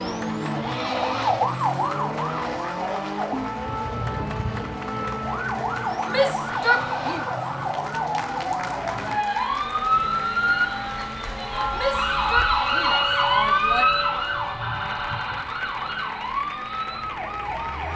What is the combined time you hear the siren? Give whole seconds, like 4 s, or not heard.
18 s.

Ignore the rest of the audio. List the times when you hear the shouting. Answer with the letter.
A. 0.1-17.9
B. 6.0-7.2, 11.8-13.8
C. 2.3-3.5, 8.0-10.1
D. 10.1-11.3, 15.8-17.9
B.